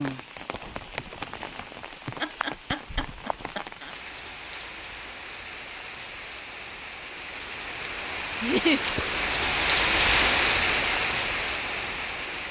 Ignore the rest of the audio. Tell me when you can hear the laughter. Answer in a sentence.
The laughter can be heard from 2.0 to 3.9 s and from 8.4 to 8.8 s.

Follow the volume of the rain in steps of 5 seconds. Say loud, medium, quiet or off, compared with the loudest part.
quiet, medium, loud.